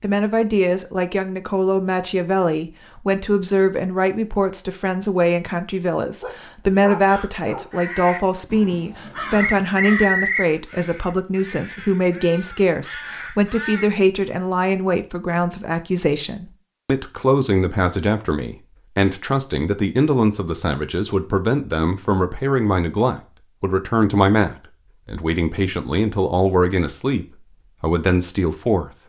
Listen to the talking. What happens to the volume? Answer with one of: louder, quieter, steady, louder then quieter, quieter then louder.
steady.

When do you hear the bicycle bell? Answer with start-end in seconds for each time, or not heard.
not heard.